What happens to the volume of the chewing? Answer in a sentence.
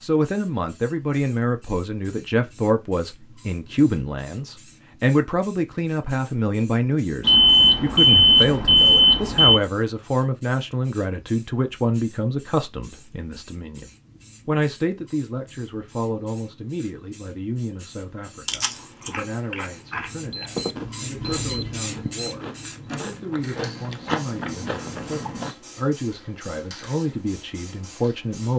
The volume of the chewing goes down, then up.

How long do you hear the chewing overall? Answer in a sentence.
You can hear the chewing for 7 seconds altogether.